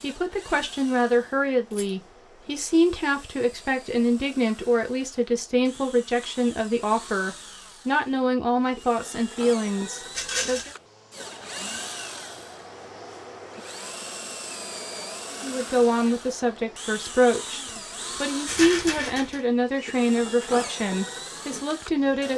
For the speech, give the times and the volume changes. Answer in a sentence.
You can hear the speech from 0.0 to 10.8 s, at a steady volume; and from 15.3 to 22.3 s, getting quieter.